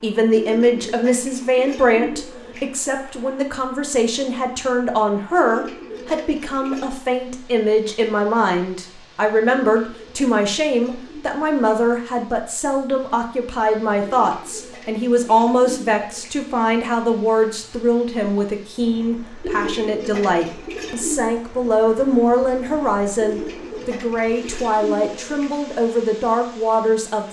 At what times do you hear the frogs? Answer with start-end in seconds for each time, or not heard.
not heard.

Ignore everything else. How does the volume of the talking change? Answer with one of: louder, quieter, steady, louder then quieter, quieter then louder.
steady.